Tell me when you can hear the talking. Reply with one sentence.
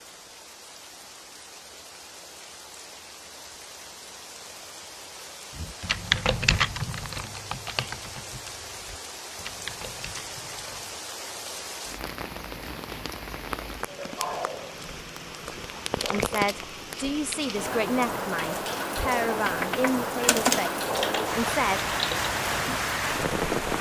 You can hear the talking from 16.1 to 21.8 s.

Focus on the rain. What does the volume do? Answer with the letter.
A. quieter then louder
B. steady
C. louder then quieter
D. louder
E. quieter
D.